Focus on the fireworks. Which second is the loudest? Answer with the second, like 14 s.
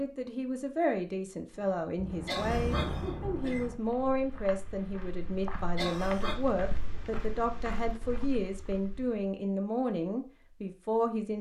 3 s.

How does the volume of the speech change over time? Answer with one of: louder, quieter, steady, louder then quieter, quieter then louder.
steady.